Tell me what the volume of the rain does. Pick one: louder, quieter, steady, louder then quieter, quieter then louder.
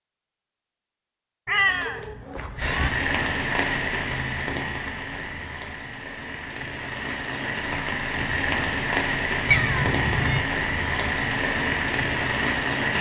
quieter then louder.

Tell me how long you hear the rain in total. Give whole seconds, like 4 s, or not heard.
10 s.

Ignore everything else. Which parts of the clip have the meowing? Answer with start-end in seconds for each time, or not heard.
1.4-2.9, 9.5-10.5.